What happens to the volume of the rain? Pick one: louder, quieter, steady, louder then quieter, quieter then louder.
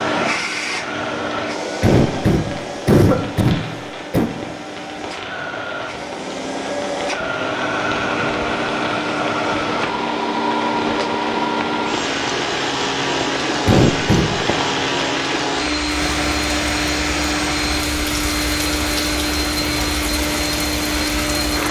louder.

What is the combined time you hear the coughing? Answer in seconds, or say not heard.
3 s.